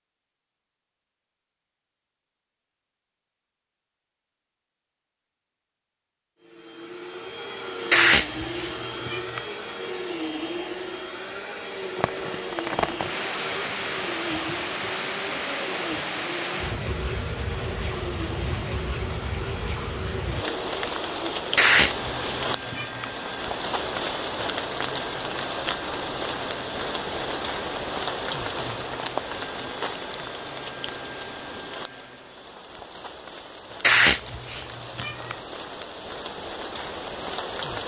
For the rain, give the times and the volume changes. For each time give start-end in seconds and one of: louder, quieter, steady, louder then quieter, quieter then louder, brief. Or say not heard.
11.9-37.8 quieter.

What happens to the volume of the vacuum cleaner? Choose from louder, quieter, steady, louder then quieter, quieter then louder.
quieter.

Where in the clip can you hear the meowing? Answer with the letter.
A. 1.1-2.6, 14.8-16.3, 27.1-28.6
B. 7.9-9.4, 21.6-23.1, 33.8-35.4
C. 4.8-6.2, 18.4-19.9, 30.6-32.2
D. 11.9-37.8
B.